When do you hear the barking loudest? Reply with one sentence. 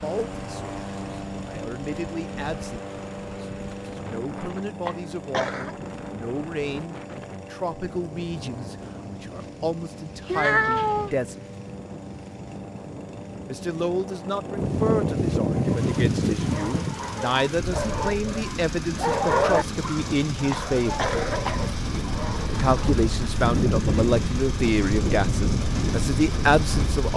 The volume of the barking peaks at 19 seconds.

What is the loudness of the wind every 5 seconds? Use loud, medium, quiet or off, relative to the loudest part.
quiet, quiet, medium, loud, loud, loud.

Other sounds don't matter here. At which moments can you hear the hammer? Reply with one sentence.
You can't hear the hammer here.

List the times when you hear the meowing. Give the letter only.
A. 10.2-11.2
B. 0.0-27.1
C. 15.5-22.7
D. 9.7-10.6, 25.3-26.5
A.